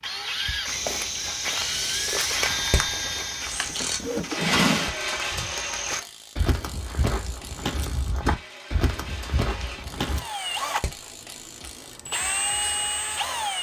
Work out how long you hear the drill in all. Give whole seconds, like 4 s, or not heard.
7 s.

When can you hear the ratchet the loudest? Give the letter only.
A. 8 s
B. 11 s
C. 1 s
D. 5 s
D.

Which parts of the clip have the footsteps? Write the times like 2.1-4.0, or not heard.
0.7-10.2.